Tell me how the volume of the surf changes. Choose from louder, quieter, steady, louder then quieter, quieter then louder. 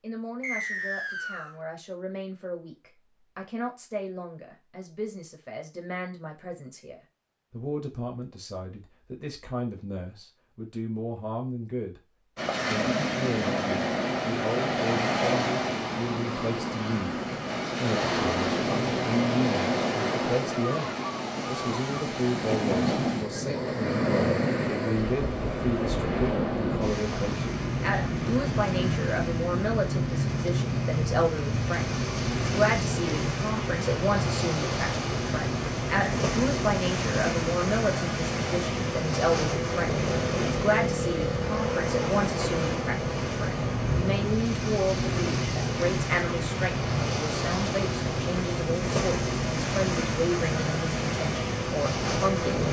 steady.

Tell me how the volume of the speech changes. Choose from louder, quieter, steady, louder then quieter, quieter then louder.
louder.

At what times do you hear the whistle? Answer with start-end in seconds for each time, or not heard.
0.4-1.6.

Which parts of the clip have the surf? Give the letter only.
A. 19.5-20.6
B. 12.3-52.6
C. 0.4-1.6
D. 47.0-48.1
B.